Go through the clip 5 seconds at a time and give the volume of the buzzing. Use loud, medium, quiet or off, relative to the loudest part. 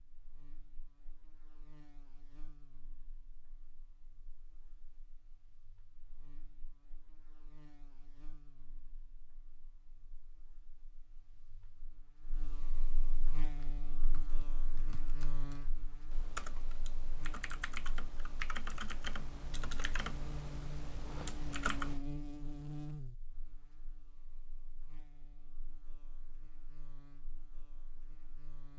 quiet, quiet, medium, medium, loud, quiet.